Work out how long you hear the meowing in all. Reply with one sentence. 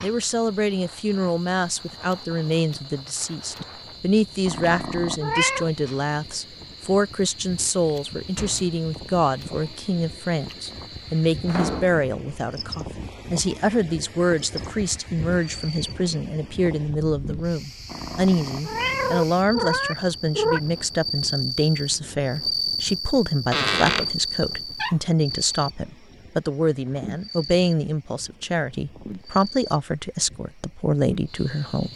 The meowing can be heard for 4 seconds in total.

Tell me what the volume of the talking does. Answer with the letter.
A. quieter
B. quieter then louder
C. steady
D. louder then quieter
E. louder
C.